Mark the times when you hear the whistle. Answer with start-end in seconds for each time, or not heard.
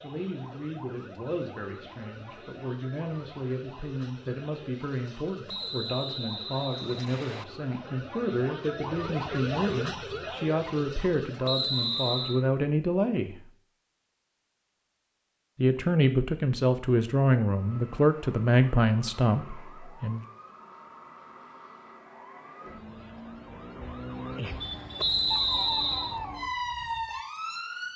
5.5-7.5, 11.4-12.4, 24.9-26.2.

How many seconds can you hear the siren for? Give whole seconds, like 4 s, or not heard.
23 s.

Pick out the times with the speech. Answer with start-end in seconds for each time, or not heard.
0.0-13.5, 15.6-20.2.